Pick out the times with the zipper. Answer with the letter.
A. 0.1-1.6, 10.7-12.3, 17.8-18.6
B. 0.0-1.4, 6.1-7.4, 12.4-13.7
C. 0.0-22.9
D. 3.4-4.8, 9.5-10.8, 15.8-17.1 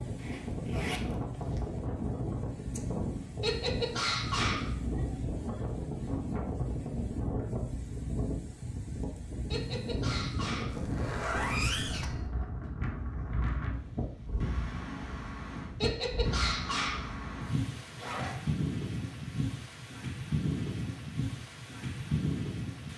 A.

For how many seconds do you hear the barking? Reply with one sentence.
The barking can be heard for 4 seconds in total.